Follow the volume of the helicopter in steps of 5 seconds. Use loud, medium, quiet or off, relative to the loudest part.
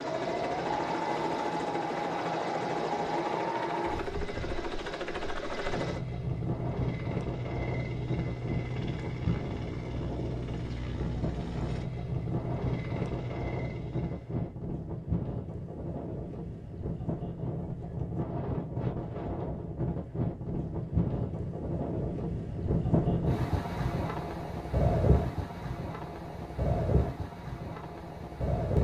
loud, loud, loud, off, off, off.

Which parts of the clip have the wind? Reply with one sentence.
The wind can be heard from 0.0 to 28.7 s.